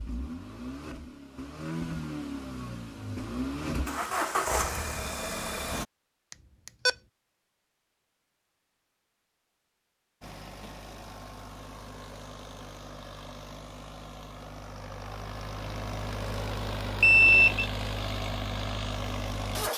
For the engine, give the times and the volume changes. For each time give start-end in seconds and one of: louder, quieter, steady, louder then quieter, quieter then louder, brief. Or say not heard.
0.0-5.8 louder
10.2-19.7 louder.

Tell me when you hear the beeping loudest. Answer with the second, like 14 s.
17 s.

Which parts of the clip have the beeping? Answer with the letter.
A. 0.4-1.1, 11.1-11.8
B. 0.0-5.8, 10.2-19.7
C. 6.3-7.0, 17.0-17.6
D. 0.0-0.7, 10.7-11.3
C.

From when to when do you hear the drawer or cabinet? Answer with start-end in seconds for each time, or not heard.
not heard.